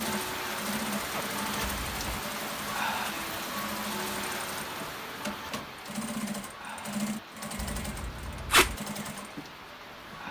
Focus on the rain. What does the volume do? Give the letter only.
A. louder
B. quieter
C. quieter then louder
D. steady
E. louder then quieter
B.